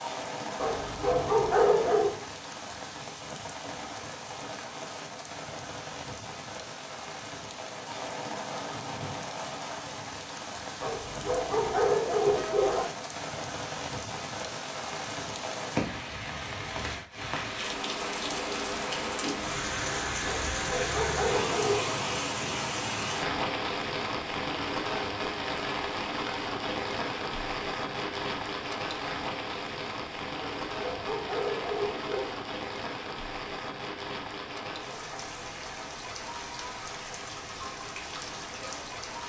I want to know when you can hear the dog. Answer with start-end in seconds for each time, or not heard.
0.6-2.1, 10.8-12.8, 20.2-22.0, 30.4-32.4.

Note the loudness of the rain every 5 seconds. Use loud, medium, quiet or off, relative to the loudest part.
medium, medium, medium, loud, loud, loud, medium, medium.